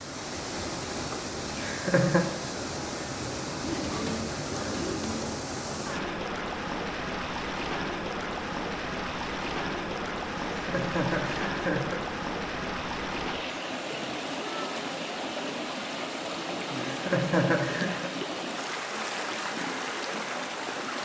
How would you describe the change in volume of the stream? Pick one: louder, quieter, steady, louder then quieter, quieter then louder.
steady.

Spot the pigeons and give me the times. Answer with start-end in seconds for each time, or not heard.
3.6-5.5.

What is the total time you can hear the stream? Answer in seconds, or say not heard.
21 s.